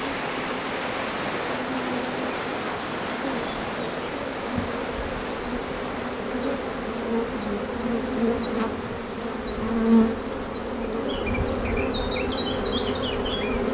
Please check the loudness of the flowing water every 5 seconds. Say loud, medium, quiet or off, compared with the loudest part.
loud, medium, medium.